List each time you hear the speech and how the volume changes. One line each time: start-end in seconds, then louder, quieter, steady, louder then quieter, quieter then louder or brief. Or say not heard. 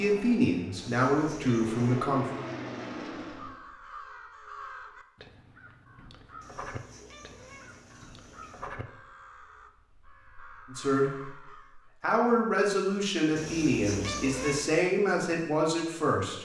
0.0-2.2 brief
10.7-16.4 louder.